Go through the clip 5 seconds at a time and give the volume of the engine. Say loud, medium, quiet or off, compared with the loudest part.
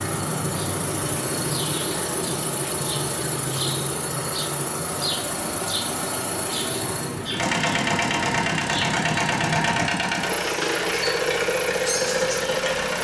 medium, loud, loud.